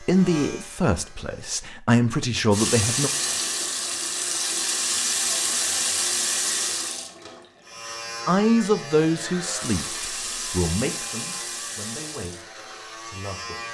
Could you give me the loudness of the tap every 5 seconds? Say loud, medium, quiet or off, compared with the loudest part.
loud, loud, medium.